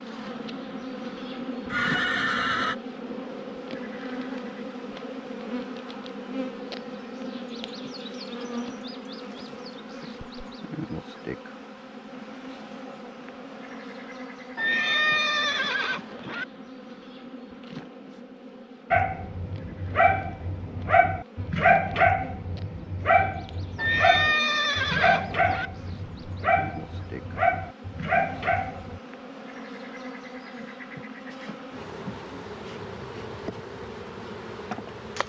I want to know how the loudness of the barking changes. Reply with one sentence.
The loudness of the barking stays about the same.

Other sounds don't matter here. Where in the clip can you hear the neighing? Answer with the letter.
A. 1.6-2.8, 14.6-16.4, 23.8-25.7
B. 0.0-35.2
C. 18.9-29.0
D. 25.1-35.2
A.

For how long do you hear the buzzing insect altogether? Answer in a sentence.
The buzzing insect can be heard for 35 seconds in total.